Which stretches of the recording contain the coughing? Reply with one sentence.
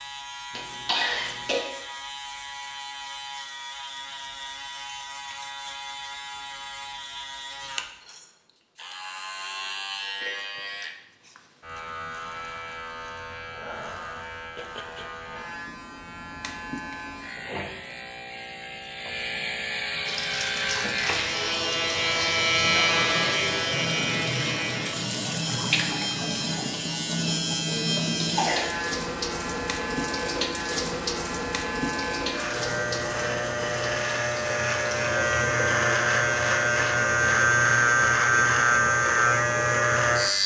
The coughing can be heard from 0.6 to 1.6 s and from 27.7 to 28.7 s.